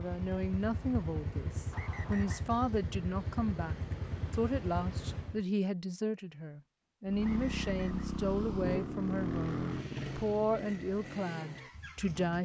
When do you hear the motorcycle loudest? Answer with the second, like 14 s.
9 s.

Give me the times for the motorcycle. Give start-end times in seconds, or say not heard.
0.0-5.5, 7.0-12.3.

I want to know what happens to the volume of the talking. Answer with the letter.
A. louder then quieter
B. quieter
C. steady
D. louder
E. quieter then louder
C.